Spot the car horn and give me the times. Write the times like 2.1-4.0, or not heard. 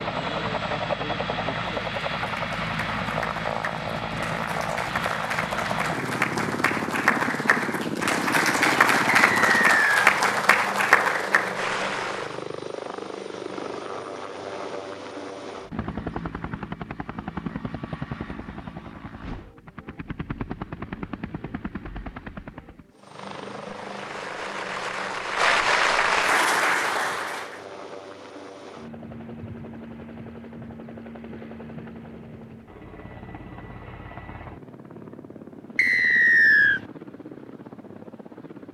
not heard.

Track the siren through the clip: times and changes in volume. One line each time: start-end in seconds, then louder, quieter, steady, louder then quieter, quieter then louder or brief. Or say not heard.
not heard.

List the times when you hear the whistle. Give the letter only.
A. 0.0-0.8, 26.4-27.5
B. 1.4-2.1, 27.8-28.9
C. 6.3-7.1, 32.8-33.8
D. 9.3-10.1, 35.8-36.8
D.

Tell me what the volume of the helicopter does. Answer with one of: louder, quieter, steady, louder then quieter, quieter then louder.
quieter.